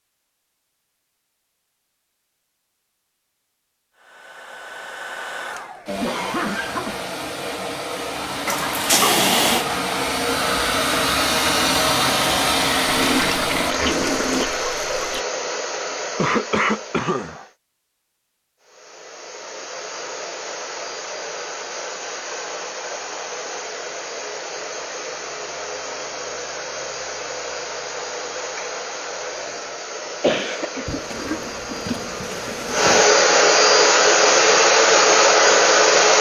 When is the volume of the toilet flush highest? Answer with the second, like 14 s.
9 s.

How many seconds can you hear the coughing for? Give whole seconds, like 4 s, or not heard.
4 s.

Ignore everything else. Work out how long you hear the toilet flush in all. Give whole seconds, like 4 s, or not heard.
6 s.